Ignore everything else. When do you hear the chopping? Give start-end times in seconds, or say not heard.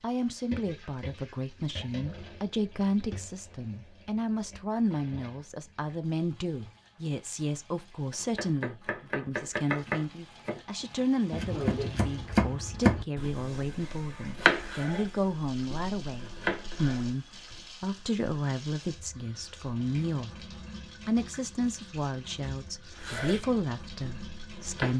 8.1-17.6, 23.0-24.9.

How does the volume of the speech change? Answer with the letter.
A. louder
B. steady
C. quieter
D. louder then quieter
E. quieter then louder
B.